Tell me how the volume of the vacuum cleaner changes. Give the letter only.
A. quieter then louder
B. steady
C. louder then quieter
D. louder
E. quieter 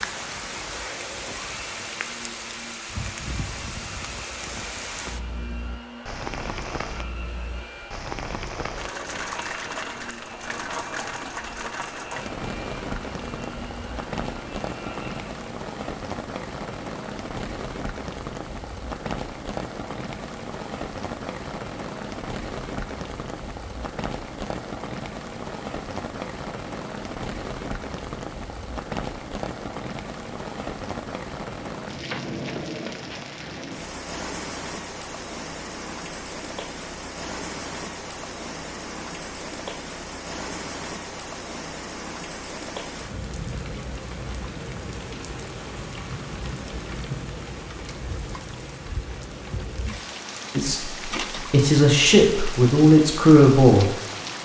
B.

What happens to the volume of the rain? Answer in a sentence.
The volume of the rain stays about the same.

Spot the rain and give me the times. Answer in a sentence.
You can hear the rain from 0.0 to 54.4 s.